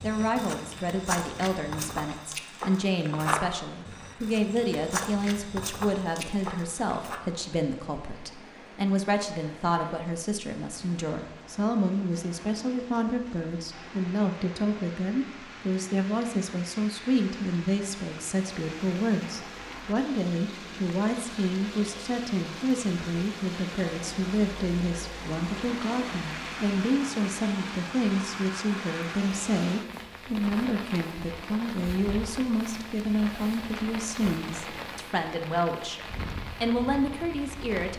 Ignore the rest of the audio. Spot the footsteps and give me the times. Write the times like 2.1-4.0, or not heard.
0.0-7.2.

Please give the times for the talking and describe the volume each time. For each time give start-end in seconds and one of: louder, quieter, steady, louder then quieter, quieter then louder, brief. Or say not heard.
0.0-37.9 steady.